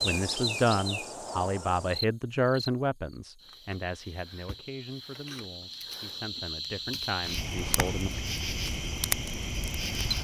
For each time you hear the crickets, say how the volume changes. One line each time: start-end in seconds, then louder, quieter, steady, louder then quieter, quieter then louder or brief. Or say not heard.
0.0-10.1 quieter then louder.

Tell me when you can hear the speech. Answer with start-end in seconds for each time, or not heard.
0.0-8.1.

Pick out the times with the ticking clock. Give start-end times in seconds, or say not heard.
not heard.